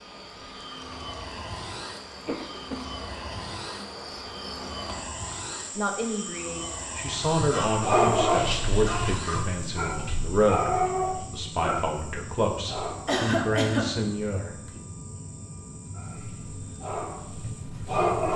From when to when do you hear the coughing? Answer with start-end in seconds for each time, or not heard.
2.2-2.9, 7.5-9.4, 13.1-13.9.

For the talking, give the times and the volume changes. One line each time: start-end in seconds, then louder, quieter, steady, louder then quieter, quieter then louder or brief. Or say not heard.
5.8-14.8 steady.